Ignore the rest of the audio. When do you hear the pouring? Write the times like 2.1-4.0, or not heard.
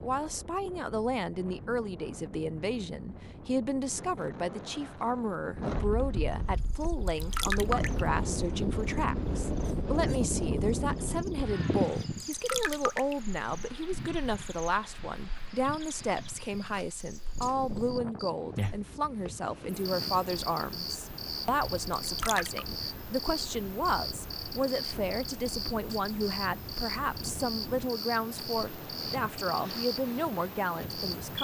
7.0-8.1, 12.3-13.2, 21.9-22.6.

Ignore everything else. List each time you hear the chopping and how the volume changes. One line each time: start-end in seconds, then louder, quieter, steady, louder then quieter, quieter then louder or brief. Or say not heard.
not heard.